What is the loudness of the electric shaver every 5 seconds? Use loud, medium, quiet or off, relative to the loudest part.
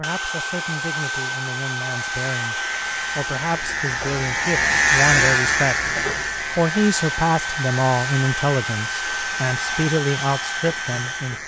loud, loud, medium.